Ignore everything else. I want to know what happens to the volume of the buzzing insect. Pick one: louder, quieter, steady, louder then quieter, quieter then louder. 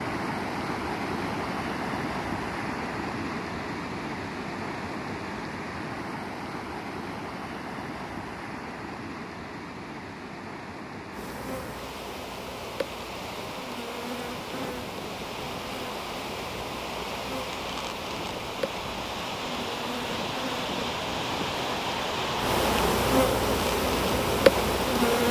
louder.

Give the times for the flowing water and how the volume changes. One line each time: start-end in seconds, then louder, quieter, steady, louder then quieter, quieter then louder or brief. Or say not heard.
0.0-25.2 quieter then louder.